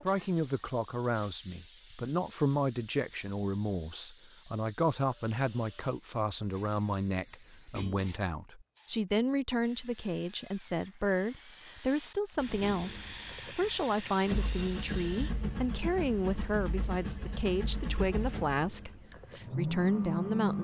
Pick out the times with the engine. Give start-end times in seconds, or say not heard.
12.3-20.6.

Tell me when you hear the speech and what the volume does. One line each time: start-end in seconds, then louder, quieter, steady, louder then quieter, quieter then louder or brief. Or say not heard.
0.0-20.6 steady.